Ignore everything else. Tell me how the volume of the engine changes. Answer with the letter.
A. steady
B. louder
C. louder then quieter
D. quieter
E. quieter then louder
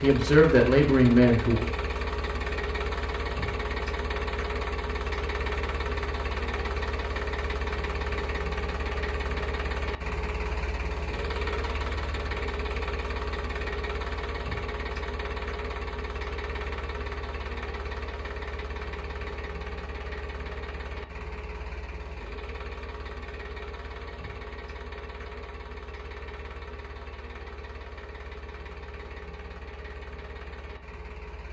D.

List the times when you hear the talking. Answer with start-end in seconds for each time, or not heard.
0.0-1.6.